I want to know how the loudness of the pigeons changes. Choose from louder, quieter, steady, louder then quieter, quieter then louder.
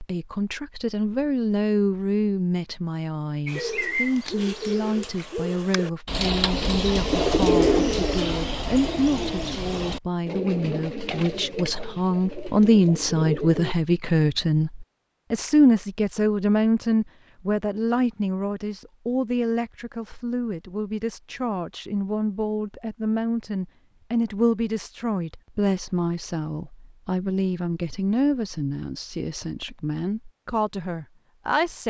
louder then quieter.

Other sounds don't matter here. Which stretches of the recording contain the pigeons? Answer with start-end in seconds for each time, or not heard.
3.5-13.8.